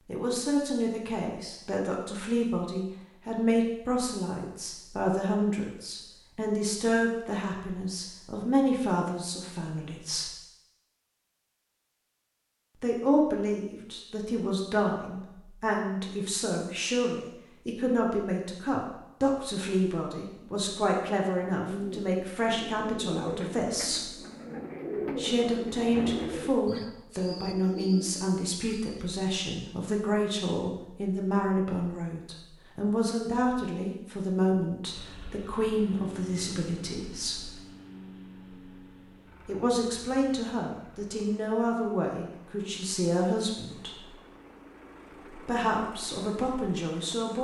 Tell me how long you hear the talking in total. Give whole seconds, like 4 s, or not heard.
41 s.